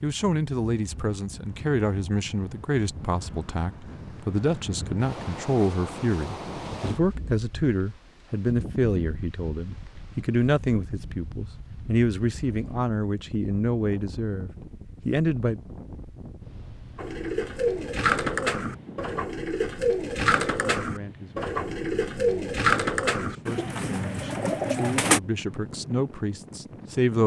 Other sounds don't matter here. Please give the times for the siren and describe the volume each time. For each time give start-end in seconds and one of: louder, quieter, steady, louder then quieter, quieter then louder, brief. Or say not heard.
not heard.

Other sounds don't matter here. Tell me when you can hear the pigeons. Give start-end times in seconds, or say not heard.
16.9-25.2.